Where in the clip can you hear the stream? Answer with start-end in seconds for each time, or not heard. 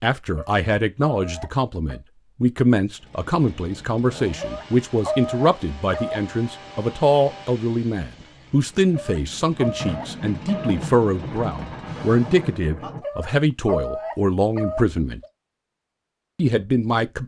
not heard.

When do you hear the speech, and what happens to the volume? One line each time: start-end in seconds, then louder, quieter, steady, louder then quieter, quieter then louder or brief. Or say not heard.
0.0-15.2 steady
16.4-17.2 brief.